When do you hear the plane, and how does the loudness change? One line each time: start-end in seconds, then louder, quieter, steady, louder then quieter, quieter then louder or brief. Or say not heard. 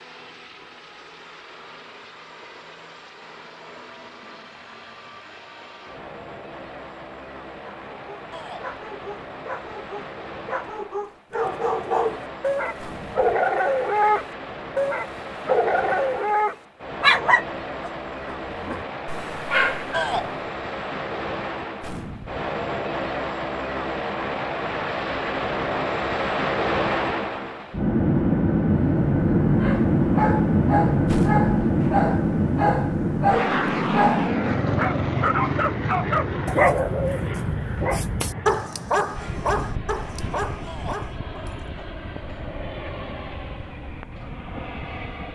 0.0-45.2 louder then quieter.